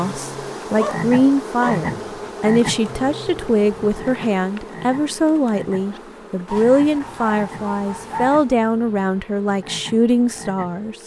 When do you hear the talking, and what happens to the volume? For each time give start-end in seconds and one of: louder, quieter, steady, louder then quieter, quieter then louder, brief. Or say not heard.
0.0-10.9 steady.